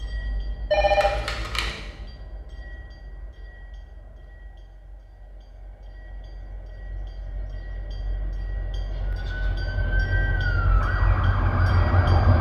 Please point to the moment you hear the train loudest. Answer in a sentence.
The loudest moment of the train is at 12 seconds.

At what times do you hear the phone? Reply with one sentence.
The phone can be heard from 0.7 to 1.8 s.